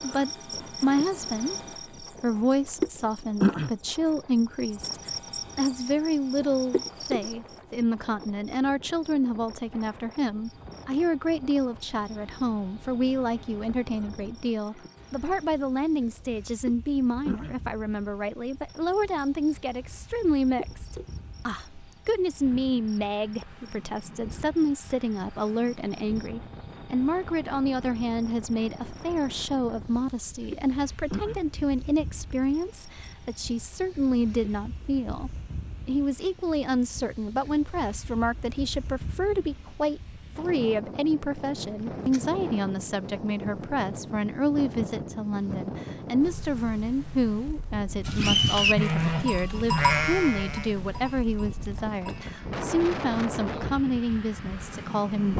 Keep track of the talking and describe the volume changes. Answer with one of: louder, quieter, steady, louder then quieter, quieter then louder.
steady.